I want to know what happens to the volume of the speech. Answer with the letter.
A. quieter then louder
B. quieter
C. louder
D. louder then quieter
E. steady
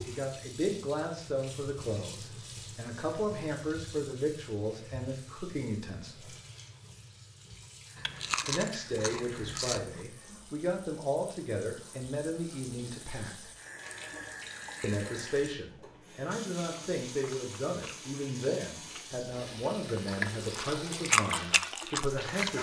E.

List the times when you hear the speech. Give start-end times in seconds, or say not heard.
0.1-6.3, 8.4-13.5, 14.8-22.5.